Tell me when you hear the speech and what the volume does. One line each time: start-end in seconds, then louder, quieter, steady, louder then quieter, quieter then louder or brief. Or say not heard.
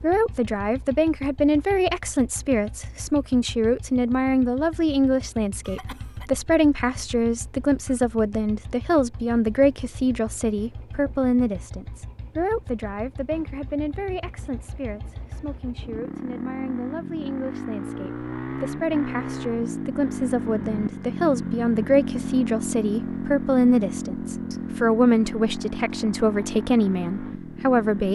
0.0-28.1 quieter then louder.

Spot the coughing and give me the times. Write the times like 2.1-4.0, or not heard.
5.6-6.3.